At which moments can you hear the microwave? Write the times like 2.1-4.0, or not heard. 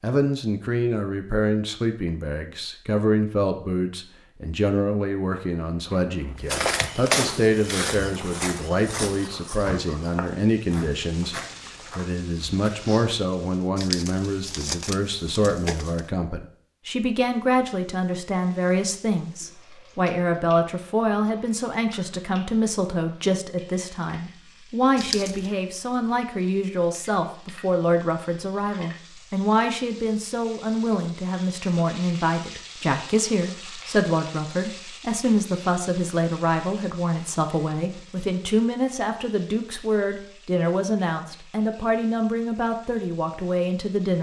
not heard.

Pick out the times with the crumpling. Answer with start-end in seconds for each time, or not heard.
13.8-16.0, 24.9-25.5.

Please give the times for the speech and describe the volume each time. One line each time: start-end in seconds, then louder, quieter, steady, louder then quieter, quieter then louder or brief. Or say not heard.
0.0-44.1 steady.